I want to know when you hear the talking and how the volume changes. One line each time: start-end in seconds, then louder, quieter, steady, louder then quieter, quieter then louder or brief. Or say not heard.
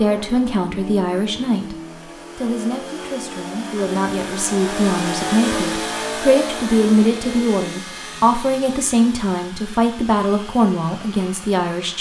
0.0-1.8 brief
2.4-11.9 louder.